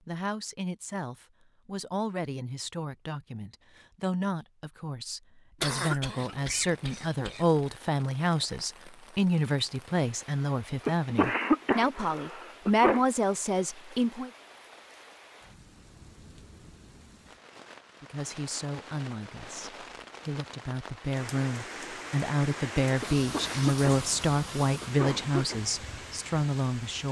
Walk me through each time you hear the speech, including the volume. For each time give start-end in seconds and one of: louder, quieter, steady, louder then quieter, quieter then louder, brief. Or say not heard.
0.1-14.3 louder
18.0-27.0 louder.